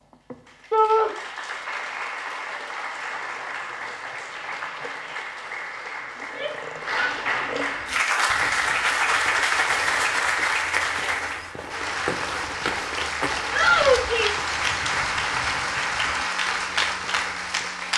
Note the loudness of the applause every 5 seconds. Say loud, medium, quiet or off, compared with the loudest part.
medium, loud, loud, loud.